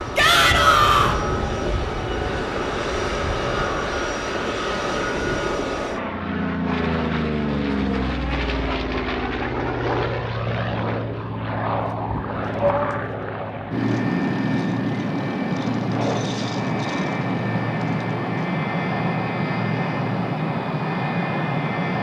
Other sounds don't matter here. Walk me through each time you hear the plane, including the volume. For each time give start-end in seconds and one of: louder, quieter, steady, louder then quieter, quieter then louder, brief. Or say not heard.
0.0-21.9 steady.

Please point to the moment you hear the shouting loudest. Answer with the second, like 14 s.
1 s.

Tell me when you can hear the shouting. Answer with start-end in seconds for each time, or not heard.
0.1-1.1, 12.6-13.2.